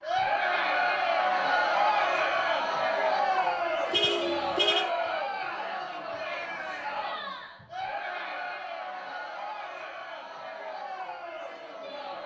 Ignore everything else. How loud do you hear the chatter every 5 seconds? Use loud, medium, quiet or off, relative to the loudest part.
loud, medium, quiet.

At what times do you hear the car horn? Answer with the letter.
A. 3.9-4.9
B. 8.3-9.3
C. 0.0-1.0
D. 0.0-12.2
A.